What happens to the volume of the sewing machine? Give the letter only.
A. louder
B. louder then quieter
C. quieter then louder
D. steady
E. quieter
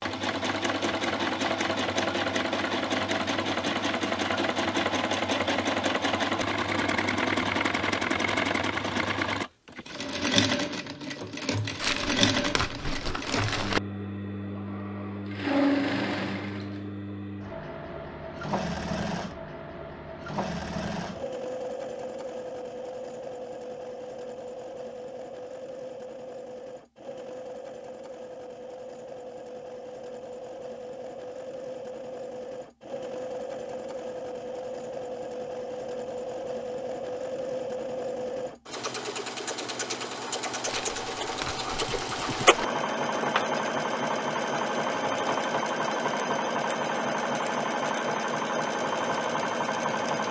C.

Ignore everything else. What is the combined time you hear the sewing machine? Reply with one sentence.
The sewing machine can be heard for 50 seconds in total.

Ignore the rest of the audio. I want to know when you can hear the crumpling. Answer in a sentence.
You can hear the crumpling from 11.8 to 13.8 s and from 40.6 to 42.6 s.